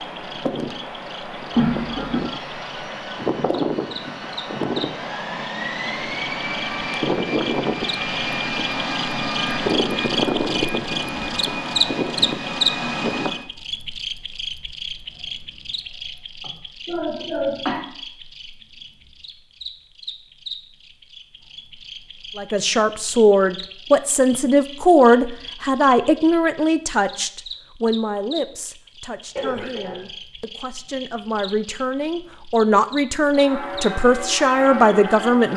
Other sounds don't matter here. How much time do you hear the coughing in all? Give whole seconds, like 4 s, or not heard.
3 s.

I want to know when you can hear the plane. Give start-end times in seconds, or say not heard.
0.0-13.4.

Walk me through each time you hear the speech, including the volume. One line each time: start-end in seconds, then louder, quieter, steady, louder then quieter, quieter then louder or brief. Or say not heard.
22.4-35.5 quieter then louder.